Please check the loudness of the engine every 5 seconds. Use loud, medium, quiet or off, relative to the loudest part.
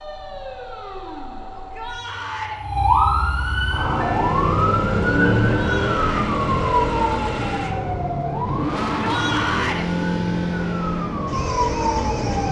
medium, loud, loud.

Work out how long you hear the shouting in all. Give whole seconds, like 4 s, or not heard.
3 s.